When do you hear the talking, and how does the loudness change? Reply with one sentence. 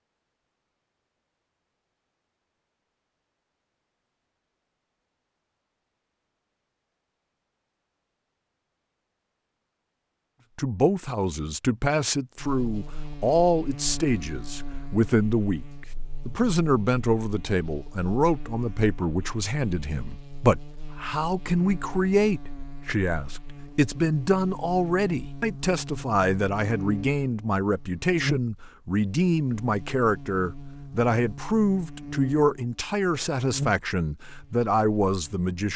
The talking can be heard from 10.6 to 35.7 s, at a steady volume.